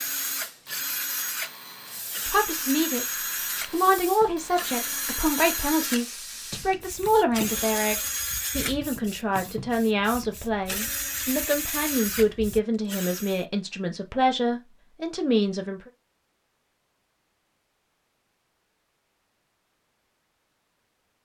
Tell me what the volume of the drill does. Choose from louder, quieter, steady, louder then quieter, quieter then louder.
steady.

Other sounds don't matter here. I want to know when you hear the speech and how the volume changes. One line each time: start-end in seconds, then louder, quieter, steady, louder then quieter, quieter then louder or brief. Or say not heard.
2.2-15.9 steady.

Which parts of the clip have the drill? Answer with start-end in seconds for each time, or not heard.
0.0-13.4.